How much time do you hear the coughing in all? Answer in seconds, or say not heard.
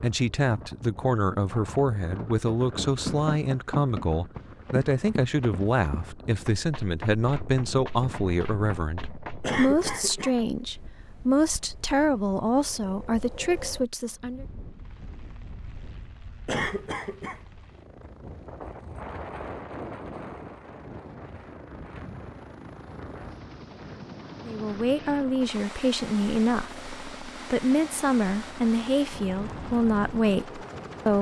2 s.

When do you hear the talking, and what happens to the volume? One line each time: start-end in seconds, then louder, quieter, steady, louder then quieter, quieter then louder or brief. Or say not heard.
0.0-14.4 steady
24.4-31.1 steady.